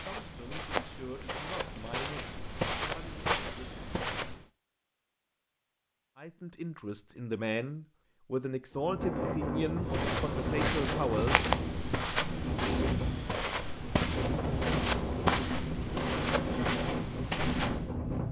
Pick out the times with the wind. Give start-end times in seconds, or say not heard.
8.7-18.2.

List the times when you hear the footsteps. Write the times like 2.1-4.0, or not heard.
0.0-4.5, 9.8-17.9.